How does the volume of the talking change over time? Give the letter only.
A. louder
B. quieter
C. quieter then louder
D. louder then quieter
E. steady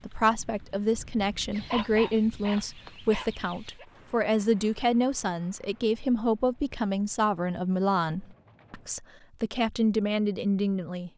E.